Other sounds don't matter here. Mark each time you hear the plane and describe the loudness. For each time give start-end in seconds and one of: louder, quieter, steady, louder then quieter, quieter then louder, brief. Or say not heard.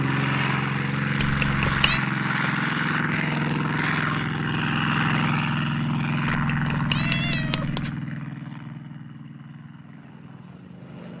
0.0-11.1 quieter.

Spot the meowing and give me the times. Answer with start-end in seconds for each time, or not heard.
1.1-2.0, 6.2-8.0.